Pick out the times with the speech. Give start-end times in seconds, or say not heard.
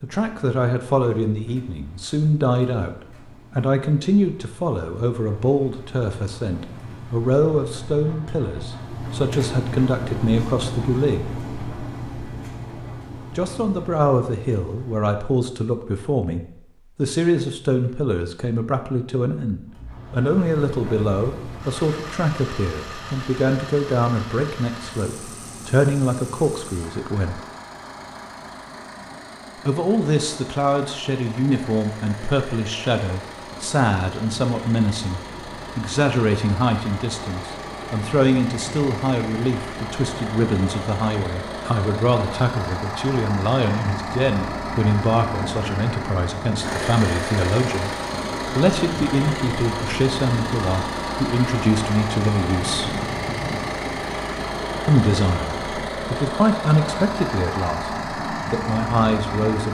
0.0-3.0, 3.5-11.3, 13.3-27.4, 29.6-53.0, 54.9-59.7.